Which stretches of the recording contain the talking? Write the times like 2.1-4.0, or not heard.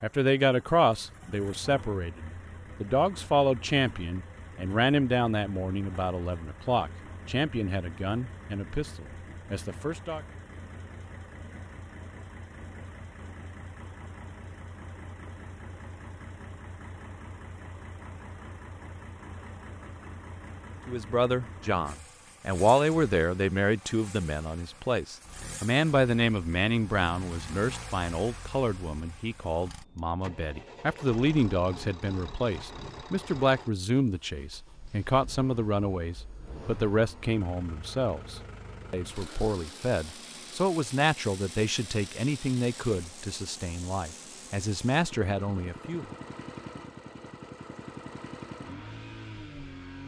0.0-10.2, 20.9-46.0.